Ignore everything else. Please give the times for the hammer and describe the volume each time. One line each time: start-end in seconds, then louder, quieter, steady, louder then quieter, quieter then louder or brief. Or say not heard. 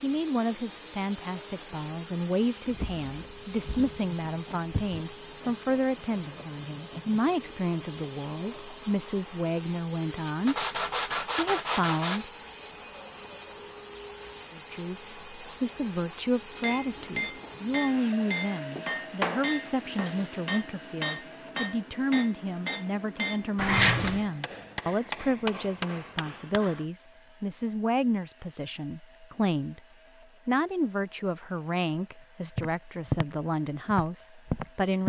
16.6-26.9 steady.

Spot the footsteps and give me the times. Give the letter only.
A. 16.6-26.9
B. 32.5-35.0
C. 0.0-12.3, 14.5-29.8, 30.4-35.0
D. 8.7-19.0
B.